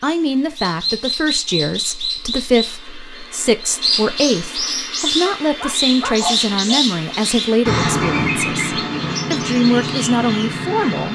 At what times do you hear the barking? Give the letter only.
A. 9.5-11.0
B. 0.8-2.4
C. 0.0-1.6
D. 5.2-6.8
D.